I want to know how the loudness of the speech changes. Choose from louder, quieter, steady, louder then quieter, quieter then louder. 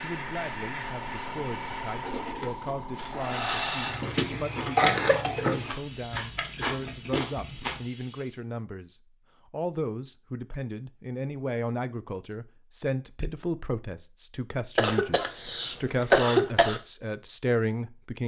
louder.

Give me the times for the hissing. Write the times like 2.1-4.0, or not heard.
0.0-8.4.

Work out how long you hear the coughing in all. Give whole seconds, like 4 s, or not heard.
3 s.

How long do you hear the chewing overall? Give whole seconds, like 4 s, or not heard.
6 s.